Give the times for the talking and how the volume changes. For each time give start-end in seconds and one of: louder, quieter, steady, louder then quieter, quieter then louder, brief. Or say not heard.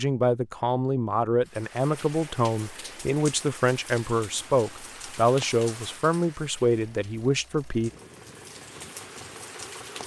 0.0-7.9 steady.